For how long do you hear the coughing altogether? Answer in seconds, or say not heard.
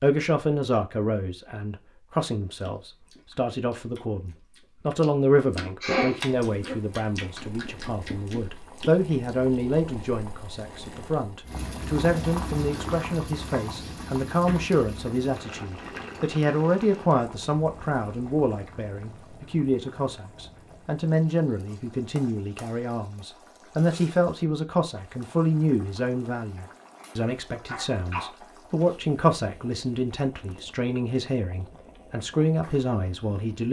3 s.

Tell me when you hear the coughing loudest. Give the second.
6 s.